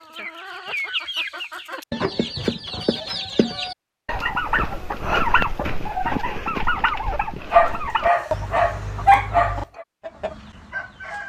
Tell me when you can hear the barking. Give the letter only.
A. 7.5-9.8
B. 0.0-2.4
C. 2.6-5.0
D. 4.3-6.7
A.